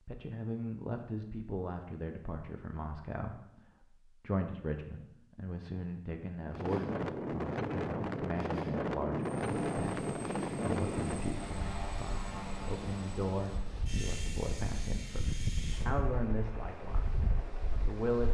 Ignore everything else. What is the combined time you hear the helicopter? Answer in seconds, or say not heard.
9 s.